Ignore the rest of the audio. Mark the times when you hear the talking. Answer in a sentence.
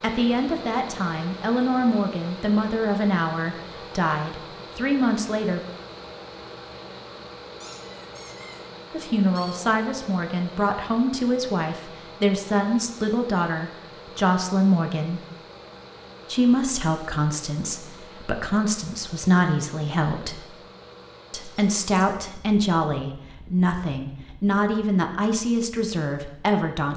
You can hear the talking from 0.0 to 5.6 s, from 8.9 to 15.2 s, from 16.2 to 20.4 s and from 21.3 to 26.9 s.